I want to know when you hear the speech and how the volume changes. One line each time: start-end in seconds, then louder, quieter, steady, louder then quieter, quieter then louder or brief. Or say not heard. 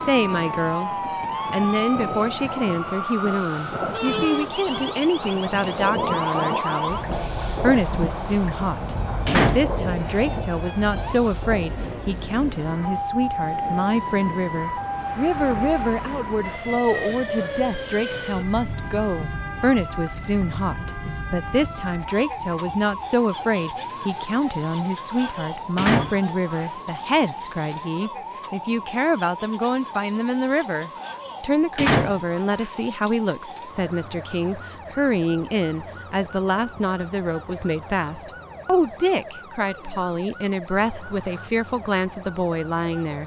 0.0-0.9 brief
1.5-43.2 steady.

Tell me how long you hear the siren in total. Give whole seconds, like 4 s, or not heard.
43 s.